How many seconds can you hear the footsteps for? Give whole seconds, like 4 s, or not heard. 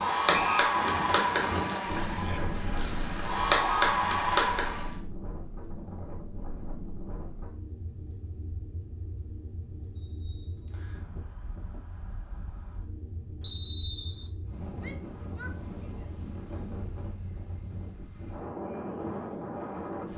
not heard.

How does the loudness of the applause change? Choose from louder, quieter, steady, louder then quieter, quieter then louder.
quieter then louder.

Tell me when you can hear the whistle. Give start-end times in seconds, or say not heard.
0.3-0.8, 9.9-11.1, 13.4-14.3.